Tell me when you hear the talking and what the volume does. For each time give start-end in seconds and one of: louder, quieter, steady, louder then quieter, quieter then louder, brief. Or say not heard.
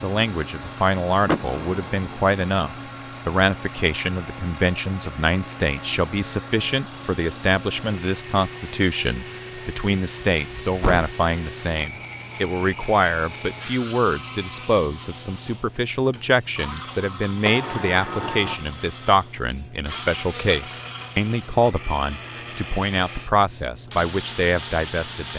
0.0-25.3 steady.